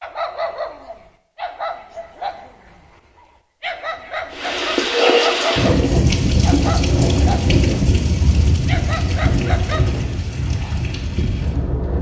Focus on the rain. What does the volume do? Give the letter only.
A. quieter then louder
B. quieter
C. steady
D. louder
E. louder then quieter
B.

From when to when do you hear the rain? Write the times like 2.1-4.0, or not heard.
4.3-11.9.